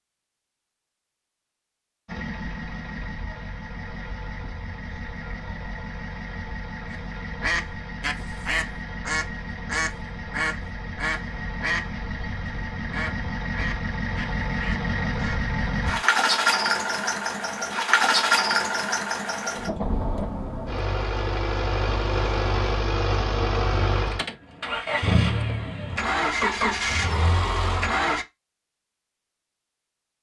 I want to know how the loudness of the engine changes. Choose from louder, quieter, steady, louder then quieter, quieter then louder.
louder.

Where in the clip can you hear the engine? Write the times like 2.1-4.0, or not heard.
2.0-28.2.